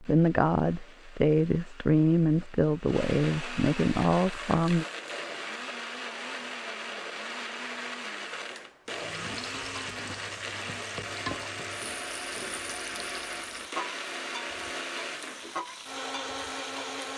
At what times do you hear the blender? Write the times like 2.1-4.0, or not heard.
0.0-17.1.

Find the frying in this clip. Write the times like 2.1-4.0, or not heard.
8.8-17.0.